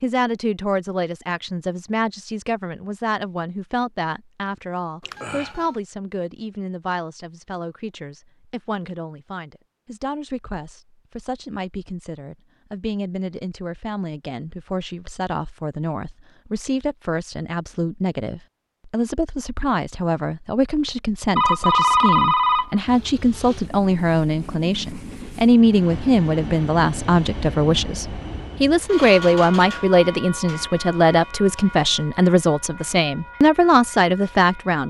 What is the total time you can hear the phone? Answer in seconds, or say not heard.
2 s.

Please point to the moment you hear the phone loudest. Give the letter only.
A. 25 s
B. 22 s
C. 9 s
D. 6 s
B.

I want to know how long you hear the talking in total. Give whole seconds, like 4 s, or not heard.
35 s.